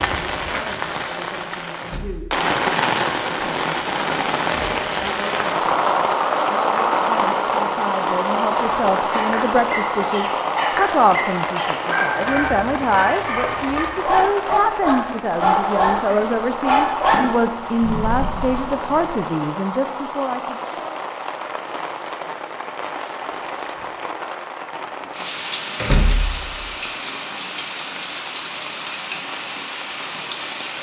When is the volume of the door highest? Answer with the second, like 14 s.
26 s.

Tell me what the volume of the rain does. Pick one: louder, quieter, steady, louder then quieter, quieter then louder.
quieter.